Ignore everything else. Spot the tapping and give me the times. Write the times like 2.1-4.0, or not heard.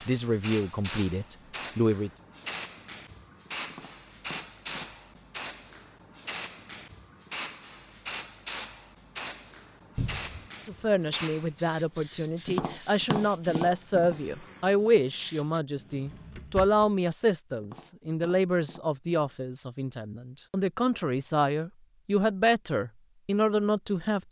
3.6-5.2, 12.4-14.2, 17.6-19.4.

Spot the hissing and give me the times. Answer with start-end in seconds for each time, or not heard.
0.0-15.6.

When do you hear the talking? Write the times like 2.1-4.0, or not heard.
0.1-2.1, 10.7-24.2.